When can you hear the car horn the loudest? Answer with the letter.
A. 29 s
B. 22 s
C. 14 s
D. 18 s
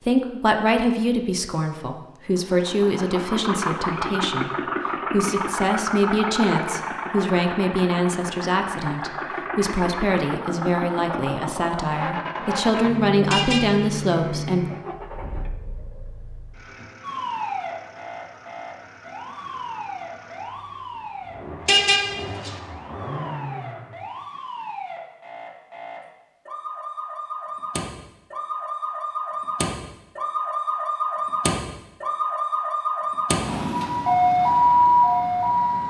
B.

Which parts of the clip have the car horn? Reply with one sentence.
You can hear the car horn from 13.3 to 13.8 s and from 21.6 to 22.6 s.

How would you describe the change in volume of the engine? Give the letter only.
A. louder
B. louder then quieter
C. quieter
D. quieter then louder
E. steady
D.